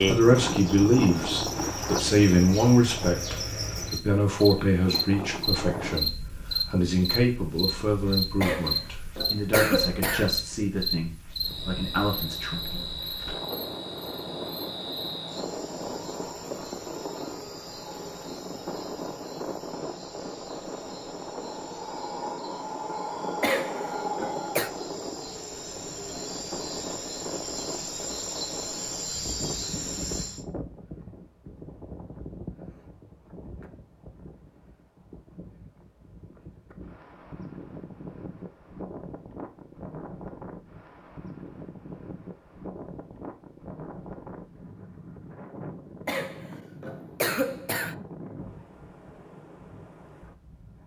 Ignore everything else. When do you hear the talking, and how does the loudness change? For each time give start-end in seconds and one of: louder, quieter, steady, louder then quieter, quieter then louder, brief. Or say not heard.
0.0-12.8 quieter.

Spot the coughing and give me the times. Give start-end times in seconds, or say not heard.
8.4-10.3, 23.4-24.7, 46.0-48.0.